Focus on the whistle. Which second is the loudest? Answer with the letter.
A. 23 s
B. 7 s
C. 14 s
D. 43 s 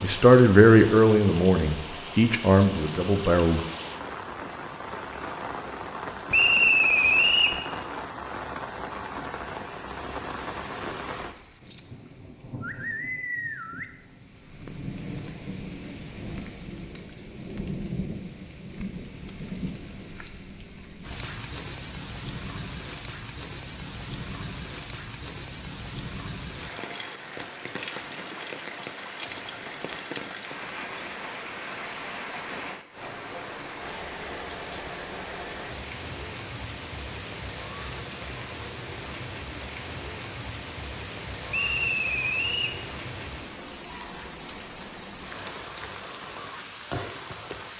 B.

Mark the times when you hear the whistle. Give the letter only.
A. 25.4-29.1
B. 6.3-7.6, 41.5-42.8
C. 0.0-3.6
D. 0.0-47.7
B.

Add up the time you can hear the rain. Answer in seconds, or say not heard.
48 s.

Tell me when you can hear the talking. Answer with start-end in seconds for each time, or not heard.
0.0-3.6.